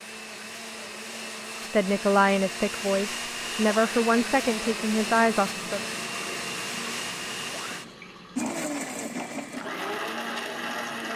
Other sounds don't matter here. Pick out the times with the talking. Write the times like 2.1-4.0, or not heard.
1.7-5.8.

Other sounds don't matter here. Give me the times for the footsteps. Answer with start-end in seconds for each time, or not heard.
not heard.